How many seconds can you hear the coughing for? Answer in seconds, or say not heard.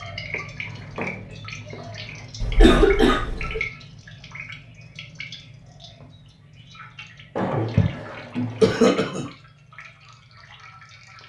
2 s.